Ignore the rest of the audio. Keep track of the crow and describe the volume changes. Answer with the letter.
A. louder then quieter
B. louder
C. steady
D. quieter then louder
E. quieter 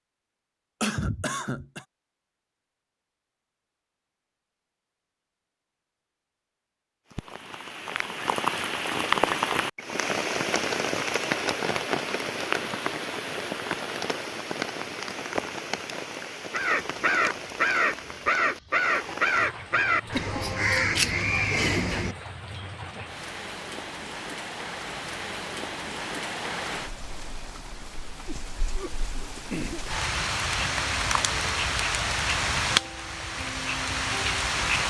C.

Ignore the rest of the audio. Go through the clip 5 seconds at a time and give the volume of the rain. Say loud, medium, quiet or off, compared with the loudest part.
off, loud, loud, medium, medium, medium, loud.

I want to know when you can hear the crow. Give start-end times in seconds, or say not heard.
16.5-22.1.